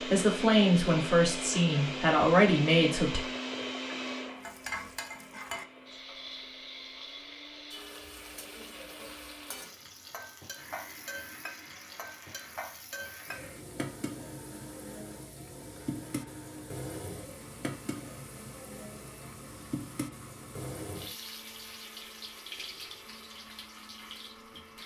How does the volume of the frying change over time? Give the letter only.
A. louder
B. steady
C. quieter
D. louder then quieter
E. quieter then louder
B.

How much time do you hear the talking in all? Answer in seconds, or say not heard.
3 s.